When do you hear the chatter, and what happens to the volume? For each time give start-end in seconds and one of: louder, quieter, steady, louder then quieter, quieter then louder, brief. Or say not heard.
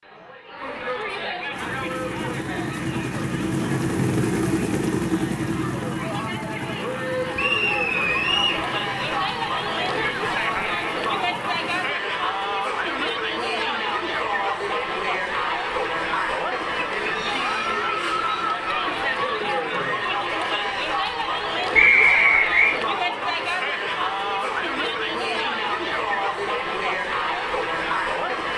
0.0-28.5 louder.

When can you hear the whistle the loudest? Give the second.
22 s.